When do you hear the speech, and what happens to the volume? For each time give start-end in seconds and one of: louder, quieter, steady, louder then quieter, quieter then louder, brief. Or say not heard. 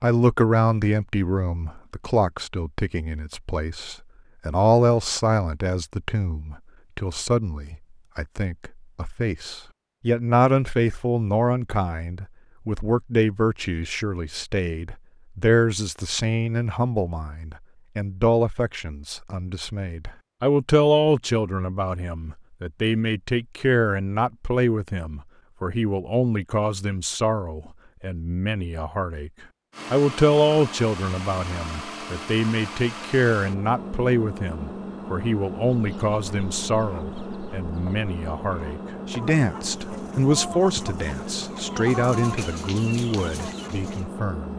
0.0-44.5 steady.